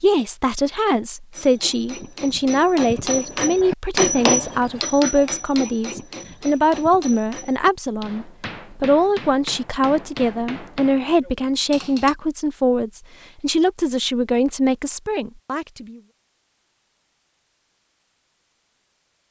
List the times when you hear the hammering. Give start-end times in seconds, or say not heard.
1.3-12.2.